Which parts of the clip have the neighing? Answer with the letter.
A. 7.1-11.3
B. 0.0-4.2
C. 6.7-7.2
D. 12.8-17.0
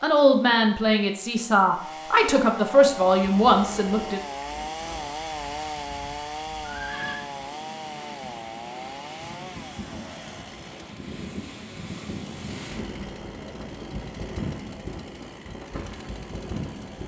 C.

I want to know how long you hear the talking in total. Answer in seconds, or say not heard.
4 s.